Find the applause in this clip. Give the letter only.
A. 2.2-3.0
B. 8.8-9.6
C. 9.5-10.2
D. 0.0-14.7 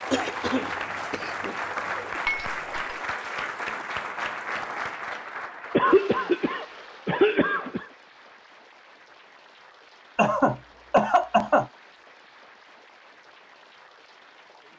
D.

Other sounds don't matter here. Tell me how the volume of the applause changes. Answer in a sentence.
The volume of the applause goes down.